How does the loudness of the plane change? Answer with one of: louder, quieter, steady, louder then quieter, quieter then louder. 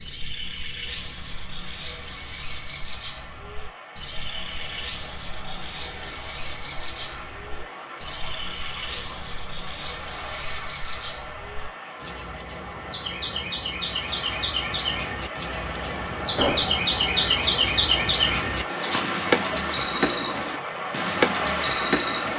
louder.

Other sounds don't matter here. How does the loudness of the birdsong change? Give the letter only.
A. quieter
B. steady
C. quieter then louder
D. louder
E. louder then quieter
D.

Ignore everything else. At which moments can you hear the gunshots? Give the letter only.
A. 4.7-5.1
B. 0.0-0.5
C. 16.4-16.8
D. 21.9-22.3
C.